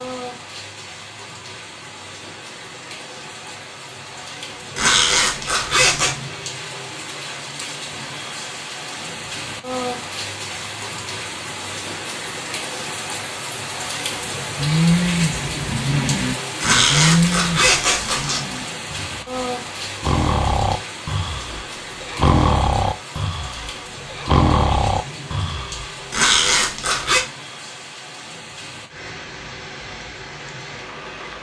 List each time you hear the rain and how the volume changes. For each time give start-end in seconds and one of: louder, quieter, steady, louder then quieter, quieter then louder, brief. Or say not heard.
0.0-31.3 louder then quieter.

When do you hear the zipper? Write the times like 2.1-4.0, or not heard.
4.8-6.2, 16.6-18.4, 26.1-27.2.